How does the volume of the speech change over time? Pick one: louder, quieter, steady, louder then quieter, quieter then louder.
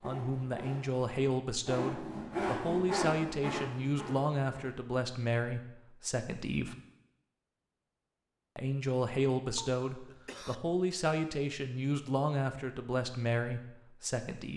steady.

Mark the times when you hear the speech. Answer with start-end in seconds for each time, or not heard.
0.0-6.8, 8.6-14.5.